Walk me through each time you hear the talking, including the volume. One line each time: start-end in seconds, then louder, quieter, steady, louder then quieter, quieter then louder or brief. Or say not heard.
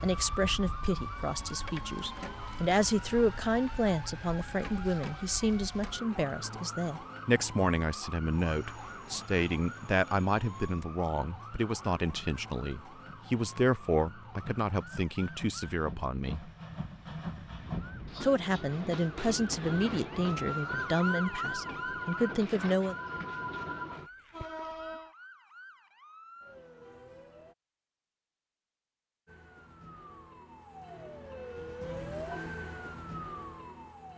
0.0-16.5 steady
18.2-22.9 steady.